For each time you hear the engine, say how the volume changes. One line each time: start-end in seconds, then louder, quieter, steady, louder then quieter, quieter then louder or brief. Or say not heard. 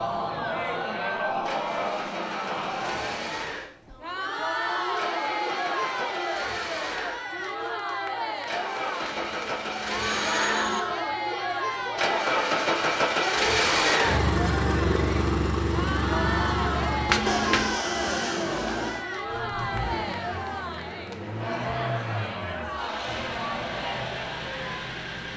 0.0-25.3 louder then quieter.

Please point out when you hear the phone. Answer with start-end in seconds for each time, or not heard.
9.0-10.8, 17.1-17.7.